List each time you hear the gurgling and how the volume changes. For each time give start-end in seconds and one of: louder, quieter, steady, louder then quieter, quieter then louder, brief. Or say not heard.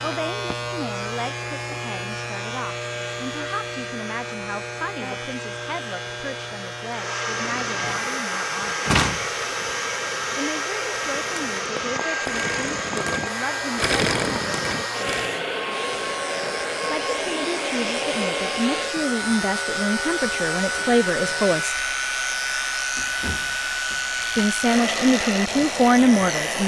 7.3-15.3 louder.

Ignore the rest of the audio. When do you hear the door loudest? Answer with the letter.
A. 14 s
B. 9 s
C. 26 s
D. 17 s
B.